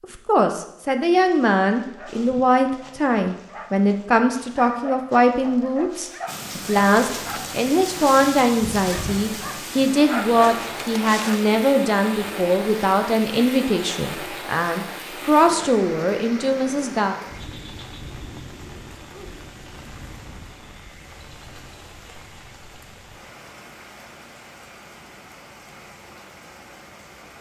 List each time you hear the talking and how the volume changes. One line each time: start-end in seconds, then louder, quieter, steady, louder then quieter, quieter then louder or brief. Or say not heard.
0.0-17.2 steady.